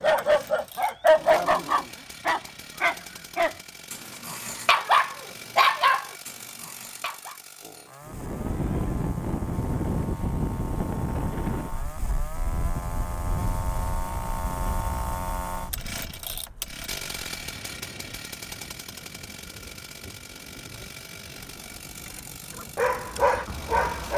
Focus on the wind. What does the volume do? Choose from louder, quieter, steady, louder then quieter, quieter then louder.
quieter.